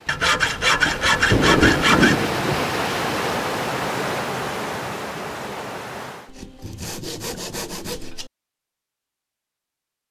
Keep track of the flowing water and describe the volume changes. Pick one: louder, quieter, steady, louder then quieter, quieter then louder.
louder then quieter.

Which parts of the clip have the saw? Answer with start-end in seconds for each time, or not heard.
0.1-2.3, 6.2-8.3.